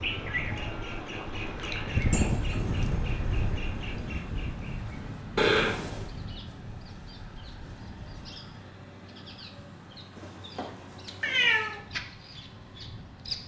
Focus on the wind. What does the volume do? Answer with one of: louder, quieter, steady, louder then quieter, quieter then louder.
louder then quieter.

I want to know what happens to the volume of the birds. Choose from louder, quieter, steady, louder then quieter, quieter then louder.
quieter then louder.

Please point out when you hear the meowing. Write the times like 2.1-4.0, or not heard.
2.1-2.5, 5.3-6.0, 10.2-11.8.